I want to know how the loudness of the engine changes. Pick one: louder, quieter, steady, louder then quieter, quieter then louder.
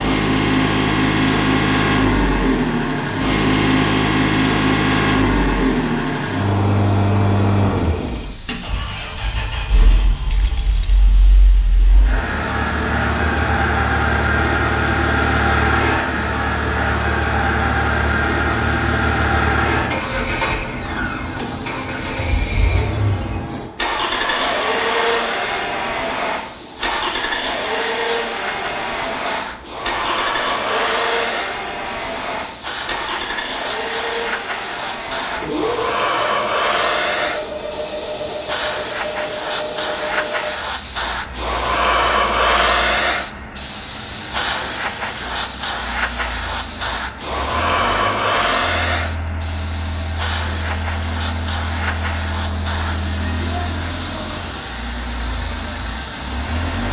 quieter.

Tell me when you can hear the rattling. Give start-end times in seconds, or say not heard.
10.2-11.0.